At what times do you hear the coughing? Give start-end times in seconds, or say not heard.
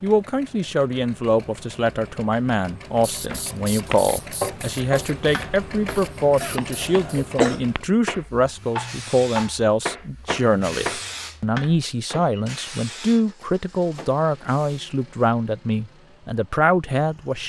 6.4-7.6.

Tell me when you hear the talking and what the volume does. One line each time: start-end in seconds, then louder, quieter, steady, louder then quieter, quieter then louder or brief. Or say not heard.
0.0-17.4 steady.